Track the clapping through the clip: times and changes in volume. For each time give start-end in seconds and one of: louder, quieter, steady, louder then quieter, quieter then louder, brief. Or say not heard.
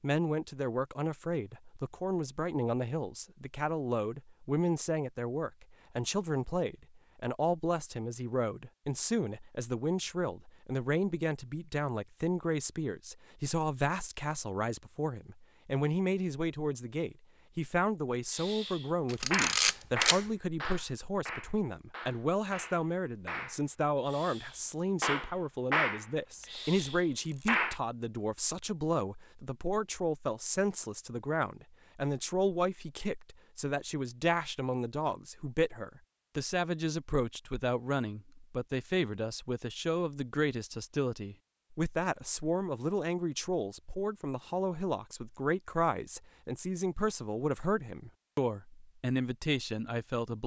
18.3-27.8 quieter then louder.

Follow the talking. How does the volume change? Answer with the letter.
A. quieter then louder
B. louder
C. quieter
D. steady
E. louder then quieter
D.